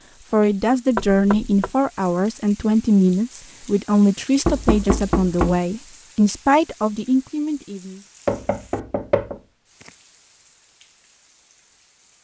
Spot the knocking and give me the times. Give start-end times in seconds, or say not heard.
0.9-1.7, 4.5-5.6, 8.2-9.9.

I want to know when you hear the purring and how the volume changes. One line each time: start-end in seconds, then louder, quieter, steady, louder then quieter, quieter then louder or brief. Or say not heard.
not heard.